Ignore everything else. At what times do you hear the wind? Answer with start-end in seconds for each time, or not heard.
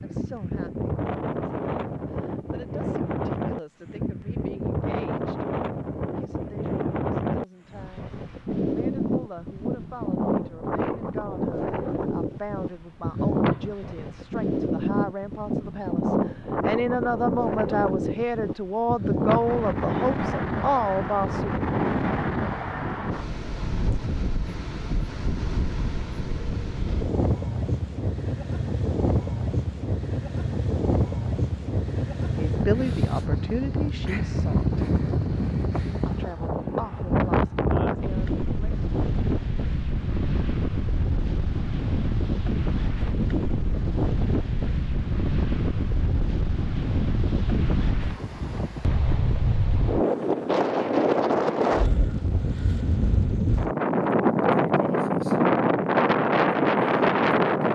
0.0-57.7.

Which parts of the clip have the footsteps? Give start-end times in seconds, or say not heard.
not heard.